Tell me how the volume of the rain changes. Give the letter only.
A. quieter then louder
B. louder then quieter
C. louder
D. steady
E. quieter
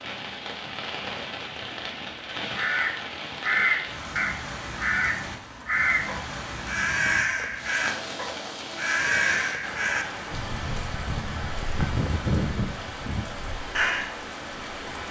D.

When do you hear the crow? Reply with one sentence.
You can hear the crow from 2.5 to 14.1 s.